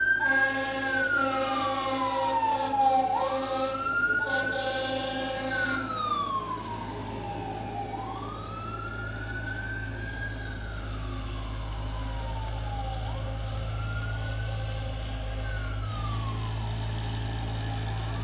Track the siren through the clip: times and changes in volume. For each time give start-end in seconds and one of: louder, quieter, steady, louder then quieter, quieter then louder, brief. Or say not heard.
0.0-18.1 quieter.